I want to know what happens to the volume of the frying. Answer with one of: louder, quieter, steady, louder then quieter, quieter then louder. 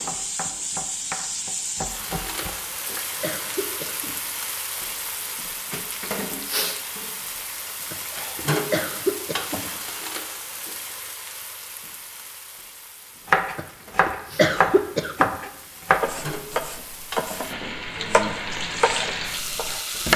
quieter then louder.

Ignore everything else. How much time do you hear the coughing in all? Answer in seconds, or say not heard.
5 s.